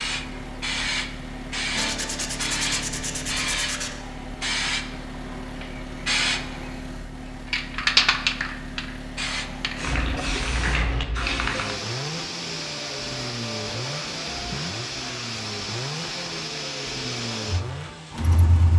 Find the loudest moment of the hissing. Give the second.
8 s.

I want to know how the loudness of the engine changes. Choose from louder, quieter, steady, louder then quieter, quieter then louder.
steady.